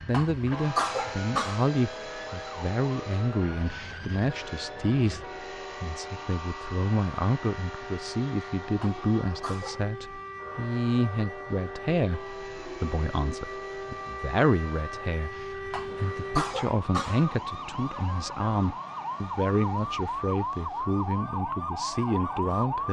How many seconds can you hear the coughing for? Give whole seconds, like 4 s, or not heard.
4 s.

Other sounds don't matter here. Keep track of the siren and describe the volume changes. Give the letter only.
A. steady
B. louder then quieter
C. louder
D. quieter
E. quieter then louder
C.